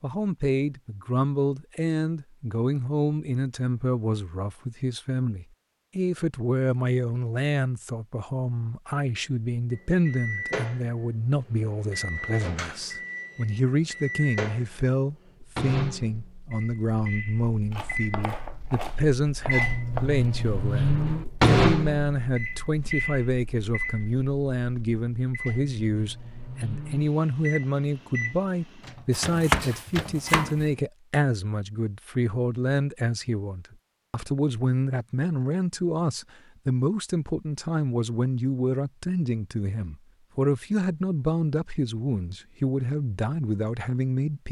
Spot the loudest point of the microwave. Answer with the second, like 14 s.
21 s.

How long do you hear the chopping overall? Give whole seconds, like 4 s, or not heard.
4 s.